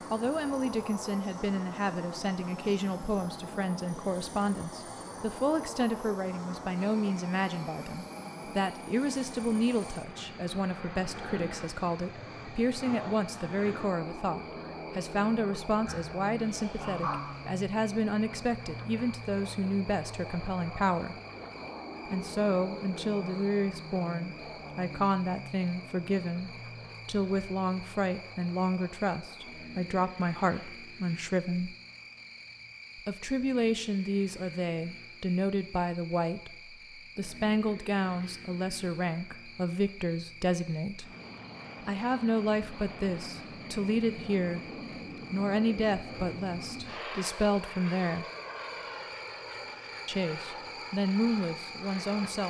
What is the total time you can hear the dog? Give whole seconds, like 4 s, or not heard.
2 s.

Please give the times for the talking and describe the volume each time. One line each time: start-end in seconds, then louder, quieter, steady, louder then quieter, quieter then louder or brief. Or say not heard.
0.1-21.1 steady
22.1-31.8 steady
33.0-41.1 steady
41.8-44.6 brief
45.3-48.2 brief
50.0-52.4 brief.